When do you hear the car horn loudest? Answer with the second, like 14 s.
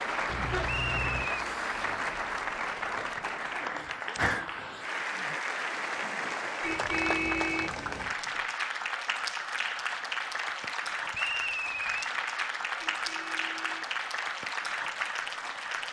7 s.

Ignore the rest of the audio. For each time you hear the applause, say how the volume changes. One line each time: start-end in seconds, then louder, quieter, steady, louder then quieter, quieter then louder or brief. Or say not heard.
0.0-15.8 steady.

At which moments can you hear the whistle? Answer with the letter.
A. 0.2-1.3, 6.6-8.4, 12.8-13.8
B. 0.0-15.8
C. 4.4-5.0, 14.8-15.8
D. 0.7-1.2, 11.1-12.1
D.